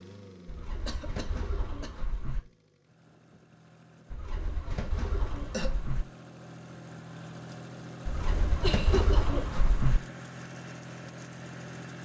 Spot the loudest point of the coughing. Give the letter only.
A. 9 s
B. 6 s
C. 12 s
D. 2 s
A.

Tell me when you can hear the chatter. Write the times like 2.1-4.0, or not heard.
not heard.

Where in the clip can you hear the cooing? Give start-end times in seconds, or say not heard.
0.5-2.4, 4.1-6.0, 8.1-10.0.